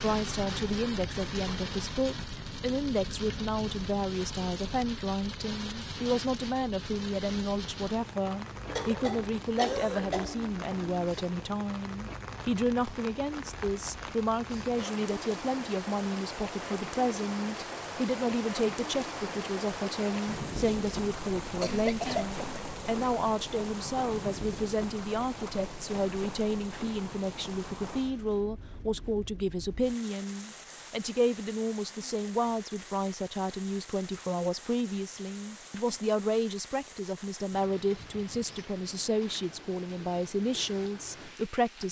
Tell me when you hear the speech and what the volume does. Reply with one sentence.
The speech can be heard from 0.0 to 41.8 s, at a steady volume.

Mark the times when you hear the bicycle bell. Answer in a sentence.
The bicycle bell can't be heard in this clip.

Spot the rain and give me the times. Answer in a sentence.
The rain can be heard from 0.0 to 41.8 s.